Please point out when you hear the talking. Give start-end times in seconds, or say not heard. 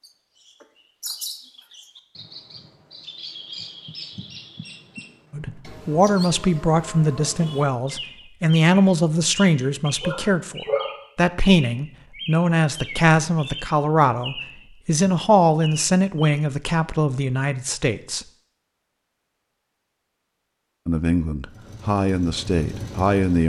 5.3-18.2, 20.9-23.4.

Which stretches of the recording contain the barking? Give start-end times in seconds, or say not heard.
10.0-10.9.